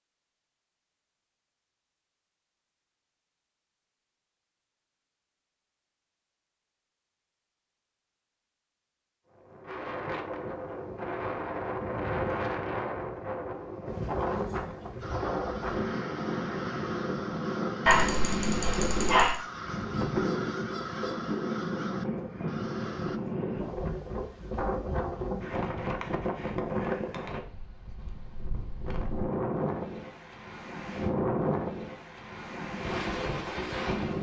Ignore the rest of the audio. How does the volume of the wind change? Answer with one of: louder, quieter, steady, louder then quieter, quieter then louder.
steady.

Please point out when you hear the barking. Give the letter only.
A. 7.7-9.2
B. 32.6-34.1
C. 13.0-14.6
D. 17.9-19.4
D.